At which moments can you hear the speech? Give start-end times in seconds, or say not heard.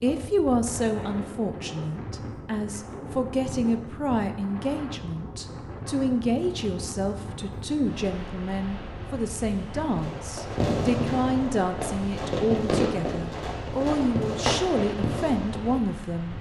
0.0-16.3.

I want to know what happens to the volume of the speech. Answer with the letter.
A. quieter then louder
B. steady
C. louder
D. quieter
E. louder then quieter
B.